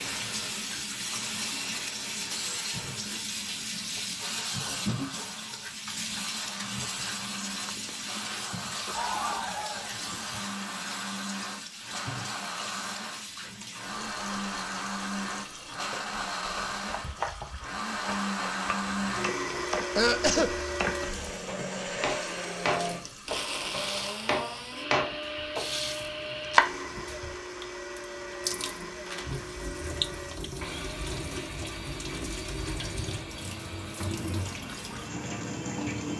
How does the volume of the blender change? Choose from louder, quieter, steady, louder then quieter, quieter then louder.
louder then quieter.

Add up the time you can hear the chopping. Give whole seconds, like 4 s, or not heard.
10 s.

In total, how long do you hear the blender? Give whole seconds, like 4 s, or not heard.
36 s.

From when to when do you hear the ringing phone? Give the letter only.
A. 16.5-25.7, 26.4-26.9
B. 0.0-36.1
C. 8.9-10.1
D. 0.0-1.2
C.